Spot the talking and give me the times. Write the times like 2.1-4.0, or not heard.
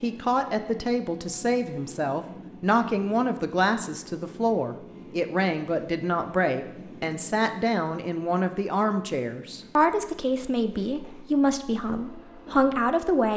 0.0-13.3.